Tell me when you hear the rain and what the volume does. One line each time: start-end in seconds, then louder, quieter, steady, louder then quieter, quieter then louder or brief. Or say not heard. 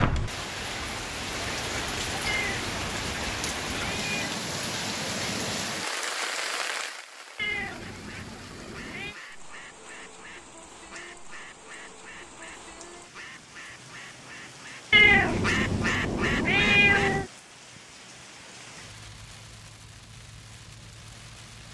0.0-21.6 quieter.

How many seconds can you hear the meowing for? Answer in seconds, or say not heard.
6 s.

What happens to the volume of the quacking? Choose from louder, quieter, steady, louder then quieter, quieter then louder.
louder.